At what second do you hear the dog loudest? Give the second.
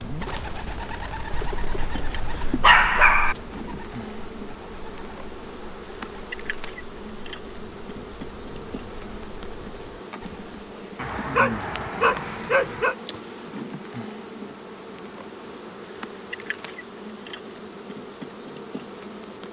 3 s.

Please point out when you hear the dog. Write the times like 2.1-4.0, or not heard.
1.3-3.4, 10.9-12.9.